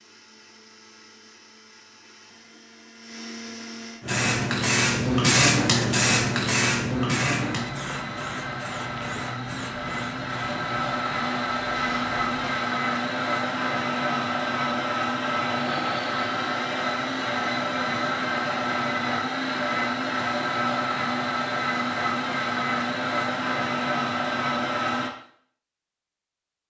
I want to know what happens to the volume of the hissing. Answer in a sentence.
The volume of the hissing goes down.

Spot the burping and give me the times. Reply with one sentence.
You can't hear the burping here.